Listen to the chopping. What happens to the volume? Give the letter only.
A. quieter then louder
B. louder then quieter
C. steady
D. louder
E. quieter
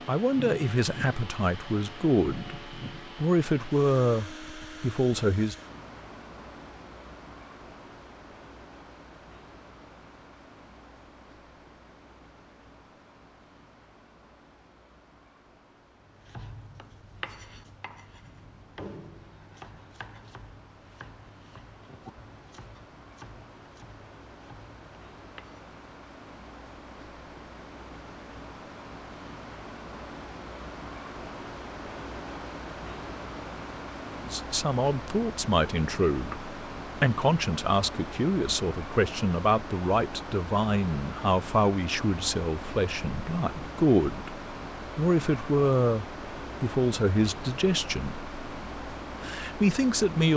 E.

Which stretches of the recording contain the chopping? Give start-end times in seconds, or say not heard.
16.0-25.6.